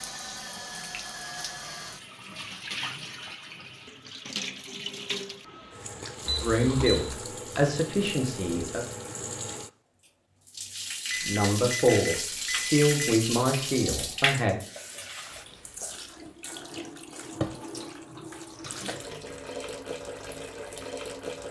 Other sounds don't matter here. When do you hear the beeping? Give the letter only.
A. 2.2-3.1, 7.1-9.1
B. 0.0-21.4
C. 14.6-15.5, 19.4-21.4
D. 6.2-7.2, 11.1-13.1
D.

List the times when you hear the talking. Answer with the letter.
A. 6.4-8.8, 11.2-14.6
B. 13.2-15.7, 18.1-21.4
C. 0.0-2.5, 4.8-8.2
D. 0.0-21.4
A.